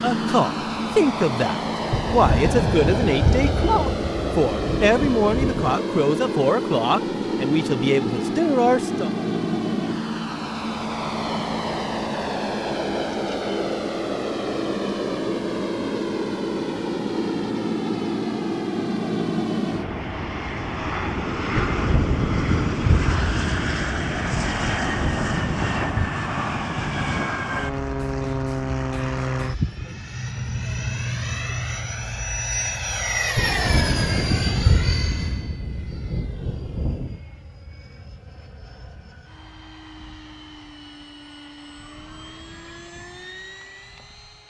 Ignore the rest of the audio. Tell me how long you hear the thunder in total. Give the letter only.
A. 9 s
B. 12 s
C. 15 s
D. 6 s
B.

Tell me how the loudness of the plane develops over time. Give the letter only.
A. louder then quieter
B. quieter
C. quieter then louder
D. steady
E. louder
B.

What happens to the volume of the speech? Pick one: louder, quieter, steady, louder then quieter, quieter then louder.
steady.